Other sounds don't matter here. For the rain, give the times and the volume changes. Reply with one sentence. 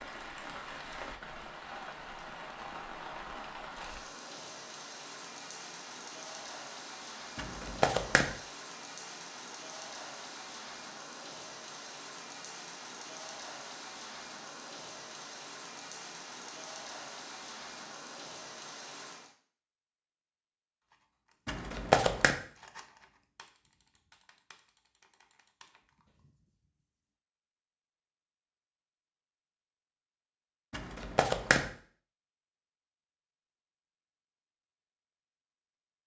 The rain can be heard from 0.0 to 19.4 s, at a steady volume.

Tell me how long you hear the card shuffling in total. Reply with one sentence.
You can hear the card shuffling for 3 seconds altogether.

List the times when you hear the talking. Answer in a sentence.
You can't hear the talking here.